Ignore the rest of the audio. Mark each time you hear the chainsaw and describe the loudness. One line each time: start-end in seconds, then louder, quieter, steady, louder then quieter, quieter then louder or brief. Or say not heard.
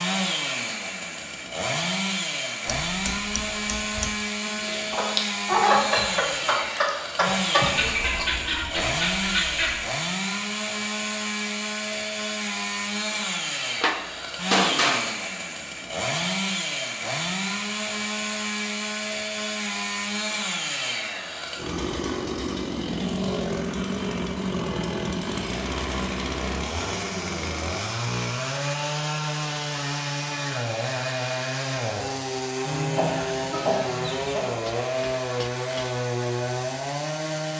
0.0-37.5 steady.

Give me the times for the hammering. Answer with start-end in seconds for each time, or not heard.
2.6-4.2, 13.8-15.2, 34.5-35.9.